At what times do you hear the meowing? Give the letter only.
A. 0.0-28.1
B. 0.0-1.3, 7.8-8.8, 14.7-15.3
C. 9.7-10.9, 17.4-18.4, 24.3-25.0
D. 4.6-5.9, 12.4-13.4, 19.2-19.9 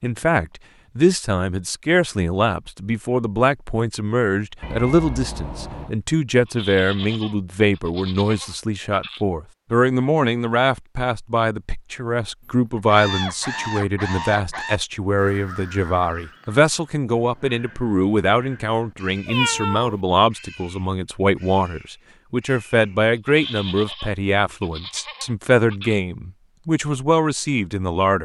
D.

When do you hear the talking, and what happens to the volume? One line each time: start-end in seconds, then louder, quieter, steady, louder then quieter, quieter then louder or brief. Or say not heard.
0.0-28.1 steady.